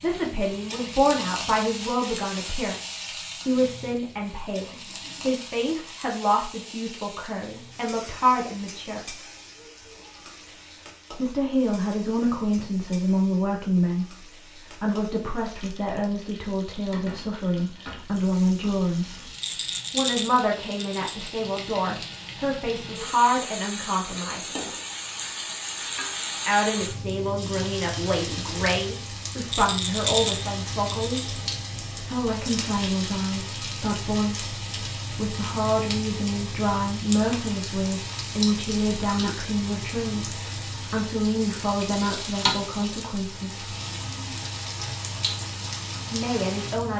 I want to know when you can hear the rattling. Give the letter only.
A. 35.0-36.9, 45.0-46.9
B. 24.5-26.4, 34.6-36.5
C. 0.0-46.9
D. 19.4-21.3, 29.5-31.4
D.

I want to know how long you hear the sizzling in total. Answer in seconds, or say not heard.
47 s.